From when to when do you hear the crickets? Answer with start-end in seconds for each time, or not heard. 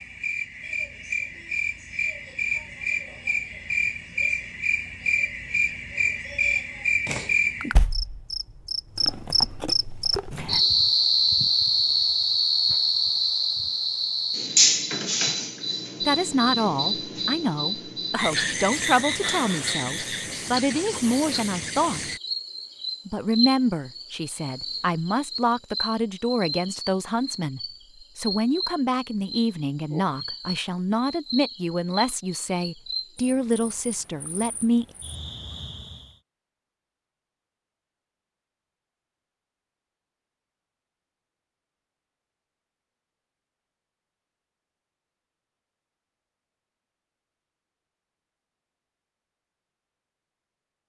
0.0-36.1.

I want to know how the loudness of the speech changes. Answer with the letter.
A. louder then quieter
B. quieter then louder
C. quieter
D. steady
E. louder
D.